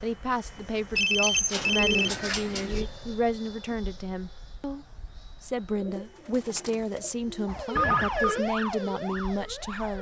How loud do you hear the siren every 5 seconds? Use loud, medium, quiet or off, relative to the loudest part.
off, loud.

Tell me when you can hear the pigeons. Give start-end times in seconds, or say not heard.
1.2-2.9, 5.7-8.4.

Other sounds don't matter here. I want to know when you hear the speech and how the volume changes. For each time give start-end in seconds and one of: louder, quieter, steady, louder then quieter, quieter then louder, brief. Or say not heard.
0.0-9.9 steady.